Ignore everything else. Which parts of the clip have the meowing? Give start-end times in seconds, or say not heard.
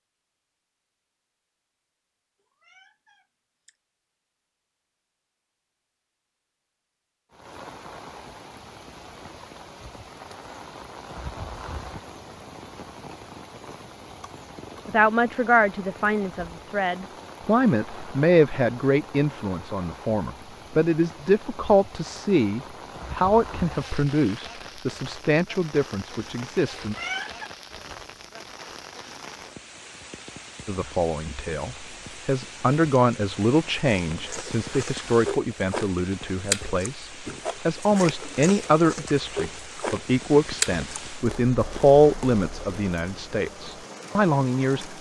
2.6-3.8, 26.8-27.5.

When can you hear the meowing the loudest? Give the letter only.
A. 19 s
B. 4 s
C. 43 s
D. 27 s
D.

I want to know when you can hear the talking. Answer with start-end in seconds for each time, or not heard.
14.8-26.9, 30.6-44.9.